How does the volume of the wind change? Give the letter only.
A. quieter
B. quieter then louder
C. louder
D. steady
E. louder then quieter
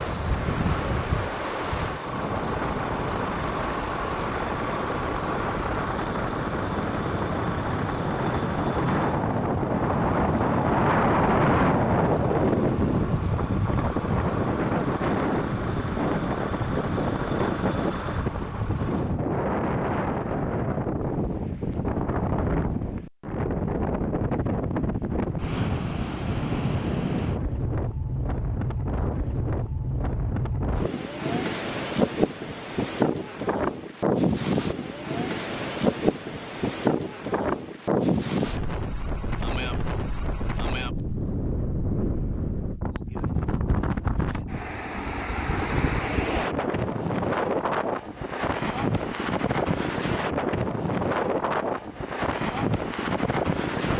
D.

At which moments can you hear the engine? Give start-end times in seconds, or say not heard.
0.0-19.2.